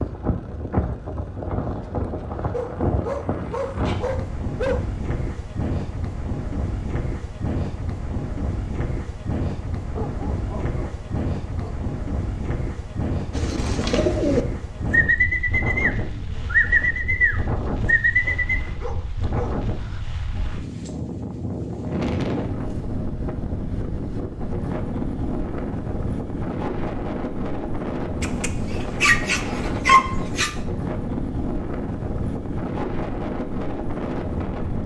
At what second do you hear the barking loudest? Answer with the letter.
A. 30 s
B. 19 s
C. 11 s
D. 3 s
A.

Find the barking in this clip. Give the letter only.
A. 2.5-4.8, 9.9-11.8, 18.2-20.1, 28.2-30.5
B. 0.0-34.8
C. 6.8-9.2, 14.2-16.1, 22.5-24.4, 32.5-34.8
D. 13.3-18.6
A.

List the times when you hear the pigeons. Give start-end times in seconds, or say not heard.
13.3-18.6.